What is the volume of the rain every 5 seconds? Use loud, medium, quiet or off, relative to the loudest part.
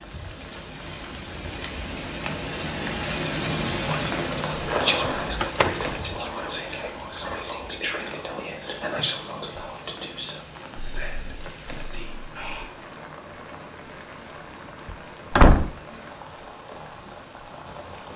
loud, medium, medium, medium.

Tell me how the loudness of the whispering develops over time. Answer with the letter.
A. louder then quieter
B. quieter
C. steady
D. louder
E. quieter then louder
B.